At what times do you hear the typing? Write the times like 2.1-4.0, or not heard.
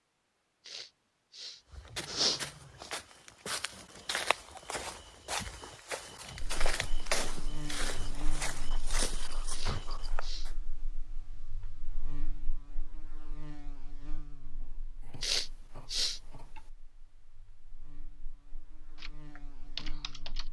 18.9-20.4.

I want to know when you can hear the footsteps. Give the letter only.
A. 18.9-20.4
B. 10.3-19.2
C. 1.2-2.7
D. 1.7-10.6
D.